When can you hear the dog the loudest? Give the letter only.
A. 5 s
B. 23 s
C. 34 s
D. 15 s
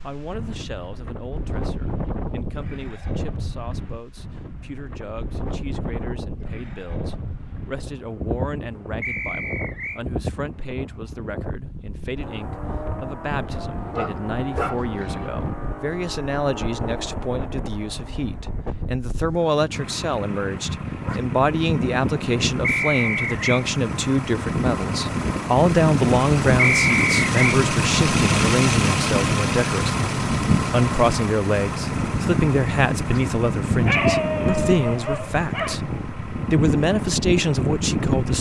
C.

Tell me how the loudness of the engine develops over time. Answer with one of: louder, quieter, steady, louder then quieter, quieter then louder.
louder then quieter.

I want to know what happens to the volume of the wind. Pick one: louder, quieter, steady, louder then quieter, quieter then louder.
louder.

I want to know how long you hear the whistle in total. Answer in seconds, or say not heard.
3 s.